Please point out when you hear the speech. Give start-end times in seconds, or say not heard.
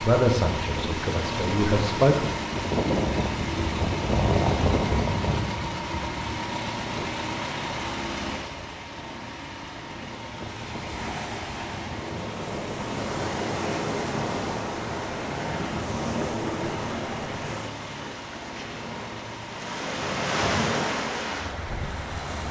0.0-2.3.